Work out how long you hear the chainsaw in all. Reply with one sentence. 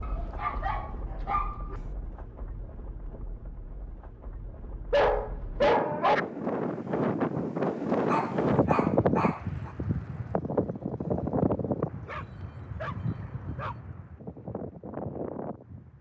You can't hear the chainsaw here.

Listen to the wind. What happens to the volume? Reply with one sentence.
The volume of the wind goes up, then down.